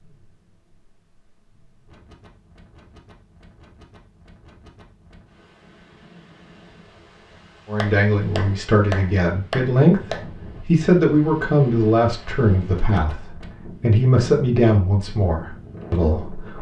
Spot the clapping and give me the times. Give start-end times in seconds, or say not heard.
7.8-10.2.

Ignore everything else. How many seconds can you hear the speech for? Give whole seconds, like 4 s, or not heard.
9 s.